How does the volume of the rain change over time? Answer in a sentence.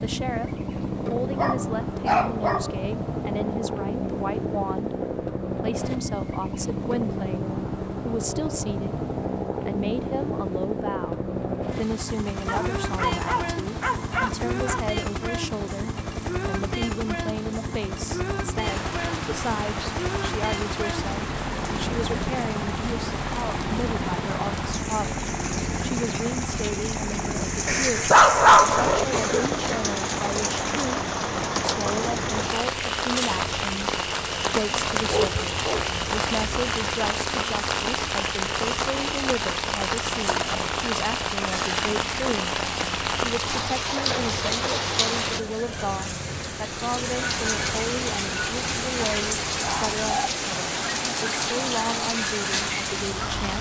The volume of the rain goes up.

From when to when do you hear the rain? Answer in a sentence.
You can hear the rain from 18.6 to 53.5 s.